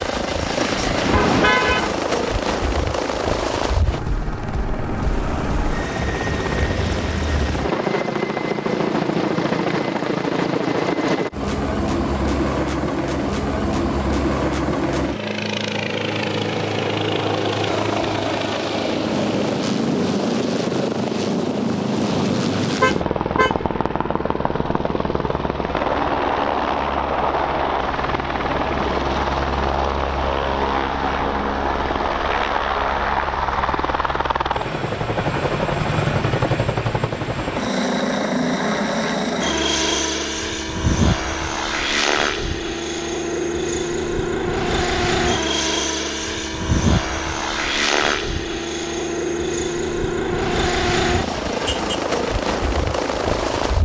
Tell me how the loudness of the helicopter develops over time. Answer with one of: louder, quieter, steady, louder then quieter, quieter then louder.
steady.